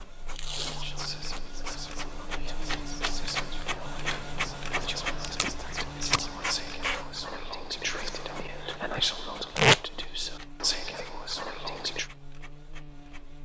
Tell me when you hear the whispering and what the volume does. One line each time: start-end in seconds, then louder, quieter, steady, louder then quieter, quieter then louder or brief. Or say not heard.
0.6-12.1 louder.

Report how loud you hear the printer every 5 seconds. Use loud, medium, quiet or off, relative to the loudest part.
loud, loud, quiet.